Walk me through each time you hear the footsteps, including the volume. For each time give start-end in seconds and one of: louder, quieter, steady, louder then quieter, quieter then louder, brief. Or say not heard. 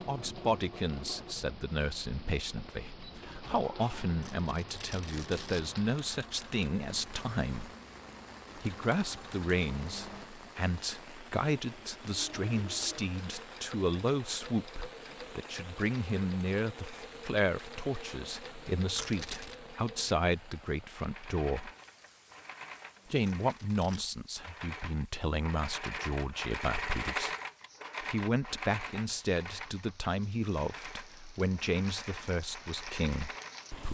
not heard.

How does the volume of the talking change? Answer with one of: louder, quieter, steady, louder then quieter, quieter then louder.
steady.